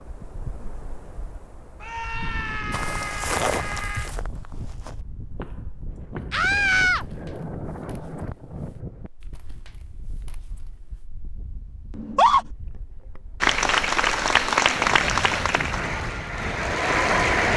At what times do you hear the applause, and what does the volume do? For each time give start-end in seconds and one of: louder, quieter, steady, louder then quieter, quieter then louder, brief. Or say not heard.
13.4-17.5 quieter then louder.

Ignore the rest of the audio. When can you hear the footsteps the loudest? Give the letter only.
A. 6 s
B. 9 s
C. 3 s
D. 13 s
C.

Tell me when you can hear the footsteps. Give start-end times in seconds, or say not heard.
2.7-11.1.